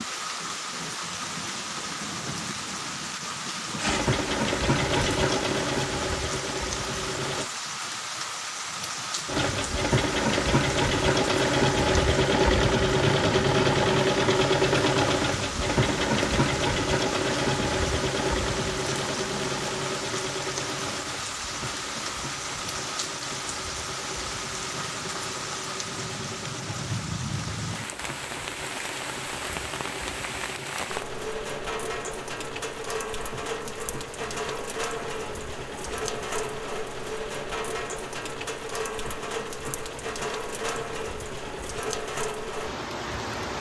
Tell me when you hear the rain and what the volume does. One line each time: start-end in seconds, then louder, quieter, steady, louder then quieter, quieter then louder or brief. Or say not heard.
0.0-43.5 steady.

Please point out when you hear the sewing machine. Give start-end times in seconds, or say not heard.
3.8-7.5, 9.2-43.5.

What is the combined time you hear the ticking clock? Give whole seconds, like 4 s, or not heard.
not heard.